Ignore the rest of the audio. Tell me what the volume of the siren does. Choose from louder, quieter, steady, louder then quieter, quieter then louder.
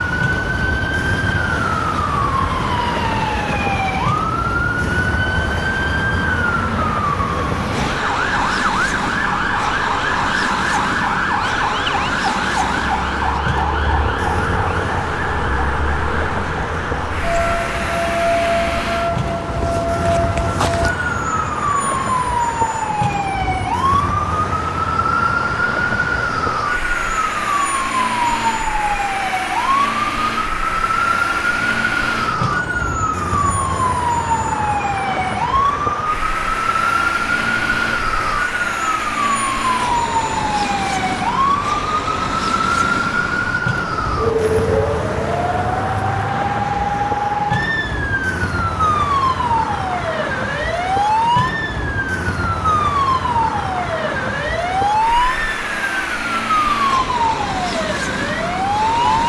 steady.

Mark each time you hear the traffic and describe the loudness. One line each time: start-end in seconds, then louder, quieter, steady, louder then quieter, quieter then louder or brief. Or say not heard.
0.0-59.2 steady.